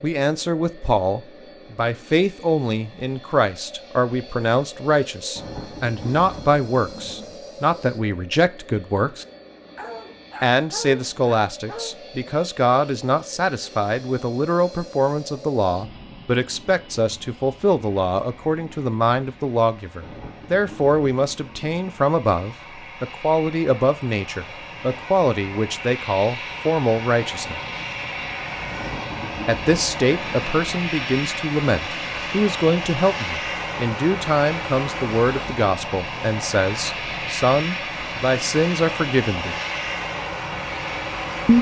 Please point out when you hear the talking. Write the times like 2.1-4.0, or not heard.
0.0-9.2, 10.4-27.6, 29.4-39.5.